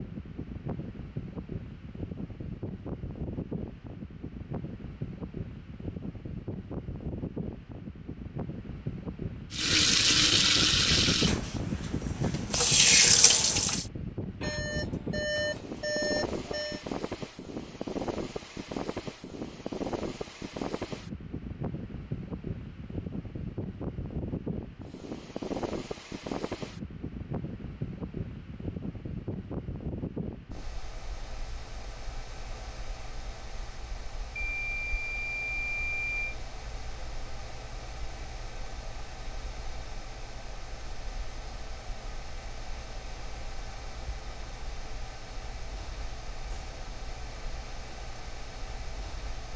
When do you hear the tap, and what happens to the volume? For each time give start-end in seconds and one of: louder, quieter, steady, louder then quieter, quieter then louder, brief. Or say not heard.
9.5-13.8 quieter then louder.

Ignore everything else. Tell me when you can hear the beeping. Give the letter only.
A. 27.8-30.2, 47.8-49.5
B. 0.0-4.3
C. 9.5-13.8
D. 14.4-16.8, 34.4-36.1
D.